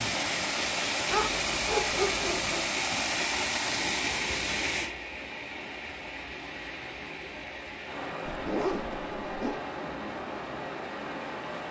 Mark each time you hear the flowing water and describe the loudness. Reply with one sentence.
The flowing water can be heard from 0.0 to 11.6 s, getting quieter.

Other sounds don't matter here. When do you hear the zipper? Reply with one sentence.
You can hear the zipper from 8.2 to 9.6 s.